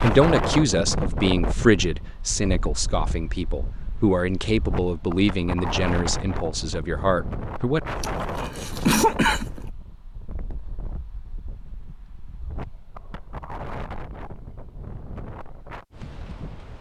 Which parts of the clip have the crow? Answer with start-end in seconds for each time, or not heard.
not heard.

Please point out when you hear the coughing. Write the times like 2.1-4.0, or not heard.
8.0-9.6.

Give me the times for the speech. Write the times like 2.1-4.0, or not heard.
0.0-7.8.